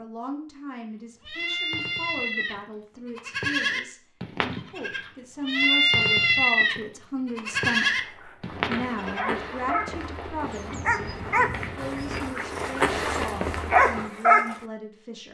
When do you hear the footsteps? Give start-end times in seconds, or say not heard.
8.4-14.1.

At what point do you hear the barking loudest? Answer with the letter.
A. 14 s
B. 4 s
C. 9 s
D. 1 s
A.